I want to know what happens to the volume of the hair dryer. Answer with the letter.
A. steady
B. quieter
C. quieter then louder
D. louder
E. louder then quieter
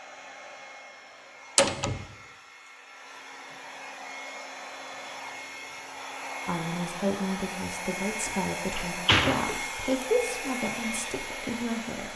D.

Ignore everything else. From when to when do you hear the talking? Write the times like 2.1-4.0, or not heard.
6.5-12.1.